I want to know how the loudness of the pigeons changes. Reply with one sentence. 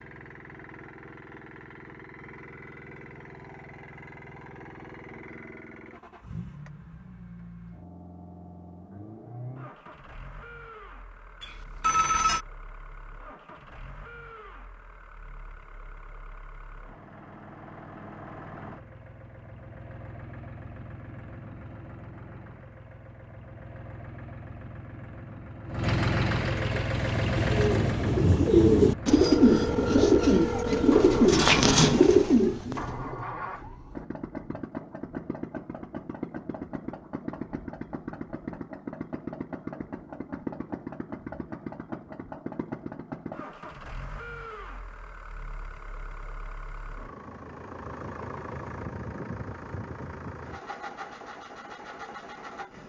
The loudness of the pigeons goes up.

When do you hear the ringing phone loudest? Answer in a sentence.
The volume of the ringing phone peaks at 12 seconds.